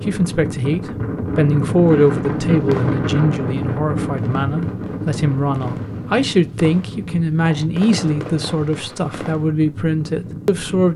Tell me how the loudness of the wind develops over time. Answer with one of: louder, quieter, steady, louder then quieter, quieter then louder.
quieter.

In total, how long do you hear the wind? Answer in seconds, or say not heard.
11 s.